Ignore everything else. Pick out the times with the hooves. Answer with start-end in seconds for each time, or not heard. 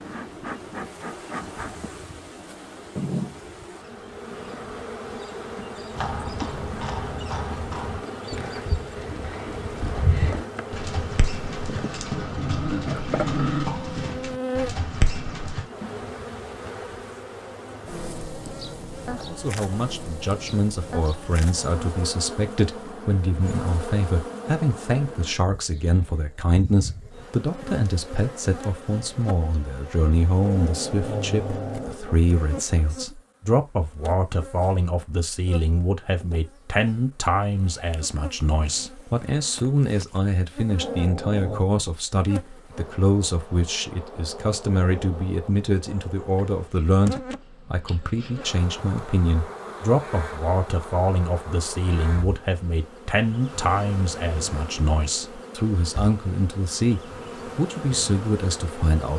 5.9-15.7.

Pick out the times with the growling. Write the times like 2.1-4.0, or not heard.
12.3-13.7, 30.4-32.2, 40.8-41.6.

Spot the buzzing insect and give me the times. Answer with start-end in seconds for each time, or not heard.
0.0-59.1.